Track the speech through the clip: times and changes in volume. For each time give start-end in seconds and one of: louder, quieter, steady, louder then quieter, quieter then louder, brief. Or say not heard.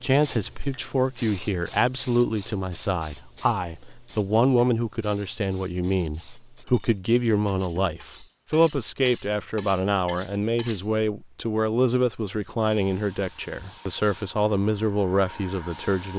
0.0-16.1 steady.